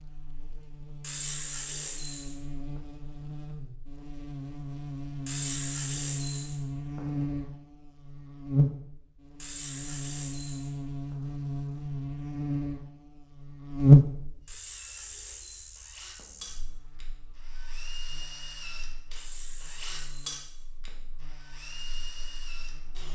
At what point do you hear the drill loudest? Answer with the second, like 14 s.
20 s.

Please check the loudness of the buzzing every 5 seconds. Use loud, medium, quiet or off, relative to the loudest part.
quiet, medium, loud, quiet, quiet.